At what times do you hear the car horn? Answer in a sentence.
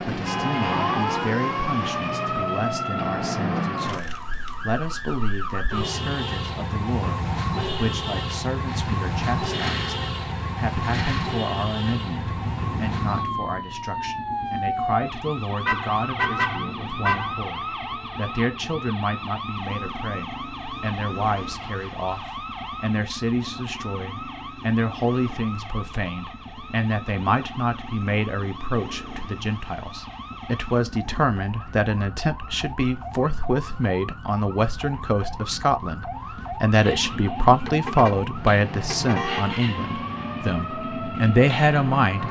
The car horn can be heard from 0.1 to 1.4 s, from 15.7 to 17.4 s and from 37.6 to 39.5 s.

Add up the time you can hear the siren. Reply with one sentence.
The siren can be heard for 42 seconds in total.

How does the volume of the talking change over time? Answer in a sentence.
The volume of the talking goes up.